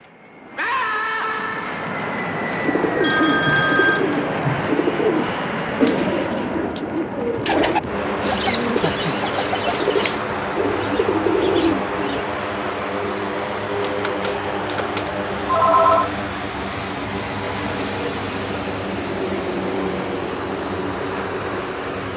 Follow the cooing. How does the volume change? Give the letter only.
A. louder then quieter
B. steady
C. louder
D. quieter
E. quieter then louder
B.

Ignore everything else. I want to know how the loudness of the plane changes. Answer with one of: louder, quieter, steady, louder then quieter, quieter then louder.
steady.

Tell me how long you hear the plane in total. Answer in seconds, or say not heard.
22 s.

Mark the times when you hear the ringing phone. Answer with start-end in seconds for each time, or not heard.
3.0-4.0, 14.1-16.1.